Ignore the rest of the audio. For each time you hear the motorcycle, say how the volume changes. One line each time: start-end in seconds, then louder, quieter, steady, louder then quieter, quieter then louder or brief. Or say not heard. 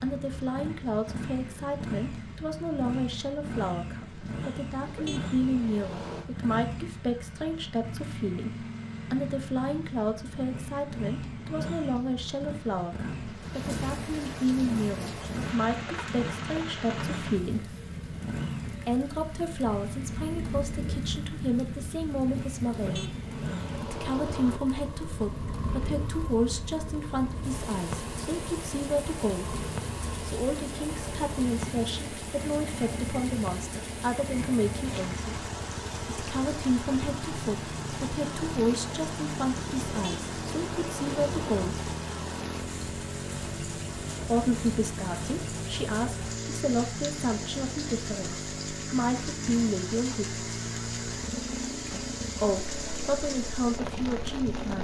0.0-54.7 steady.